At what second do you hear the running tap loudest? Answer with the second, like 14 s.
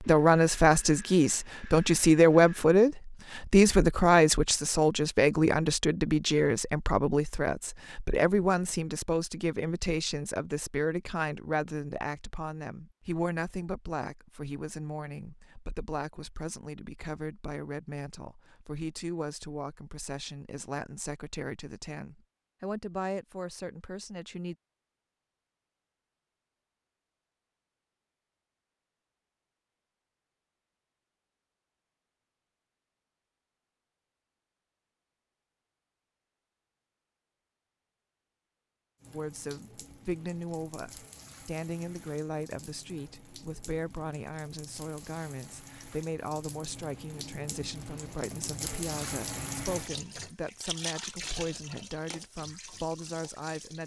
49 s.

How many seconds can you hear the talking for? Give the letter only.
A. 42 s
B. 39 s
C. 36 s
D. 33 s
B.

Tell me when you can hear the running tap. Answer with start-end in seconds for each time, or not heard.
39.0-53.8.